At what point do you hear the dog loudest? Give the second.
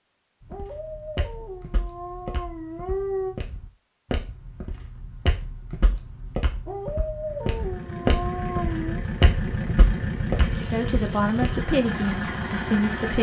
3 s.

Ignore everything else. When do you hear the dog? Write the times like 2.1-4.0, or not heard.
0.5-3.4, 6.7-9.0.